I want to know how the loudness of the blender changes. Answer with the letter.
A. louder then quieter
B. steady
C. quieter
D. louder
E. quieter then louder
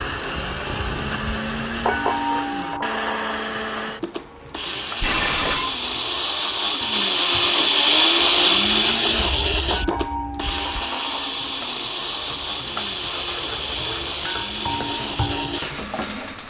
A.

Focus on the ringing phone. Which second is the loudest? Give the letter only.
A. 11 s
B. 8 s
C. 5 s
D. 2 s
C.